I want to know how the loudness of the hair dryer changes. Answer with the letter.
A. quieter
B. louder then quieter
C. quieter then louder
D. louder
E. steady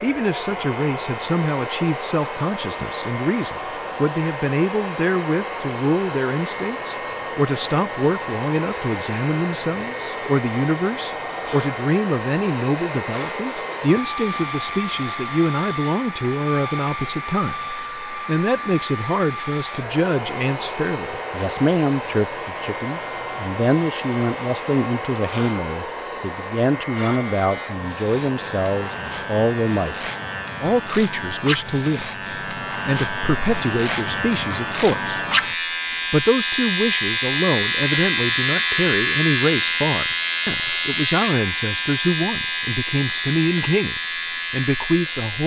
E.